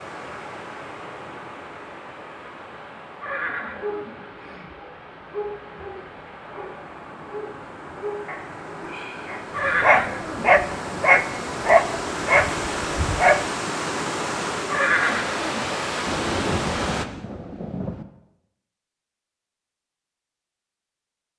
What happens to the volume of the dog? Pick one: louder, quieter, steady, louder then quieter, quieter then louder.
louder.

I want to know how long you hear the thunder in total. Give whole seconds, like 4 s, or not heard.
2 s.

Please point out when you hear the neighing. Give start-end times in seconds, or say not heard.
3.2-4.7, 9.5-11.1, 14.7-16.2.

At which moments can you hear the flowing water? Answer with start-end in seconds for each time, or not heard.
0.0-17.1.